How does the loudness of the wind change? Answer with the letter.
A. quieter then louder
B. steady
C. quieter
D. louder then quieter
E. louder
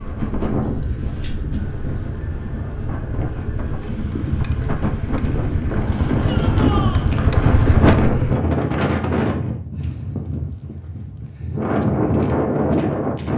E.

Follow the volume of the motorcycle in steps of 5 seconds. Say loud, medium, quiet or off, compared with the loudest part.
medium, loud, off.